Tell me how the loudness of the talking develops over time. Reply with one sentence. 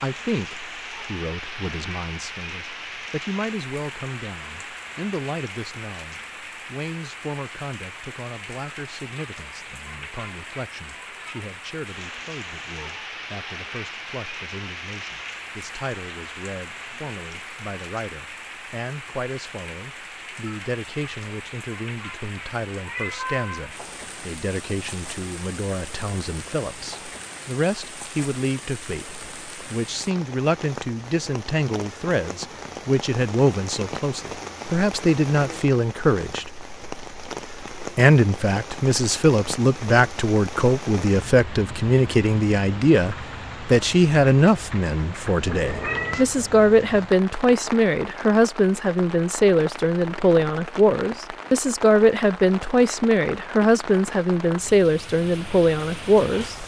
The loudness of the talking goes up.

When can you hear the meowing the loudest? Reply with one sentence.
The volume of the meowing peaks at 46 seconds.